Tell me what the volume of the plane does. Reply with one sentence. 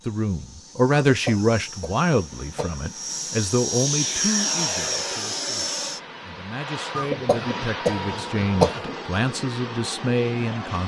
The volume of the plane goes up, then down.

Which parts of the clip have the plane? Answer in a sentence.
You can hear the plane from 0.0 to 10.8 s.